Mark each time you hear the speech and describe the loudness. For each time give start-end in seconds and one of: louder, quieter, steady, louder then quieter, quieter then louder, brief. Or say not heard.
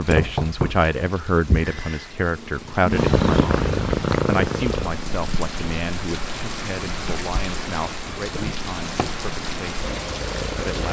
0.0-10.8 quieter.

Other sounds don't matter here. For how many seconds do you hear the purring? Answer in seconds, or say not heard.
9 s.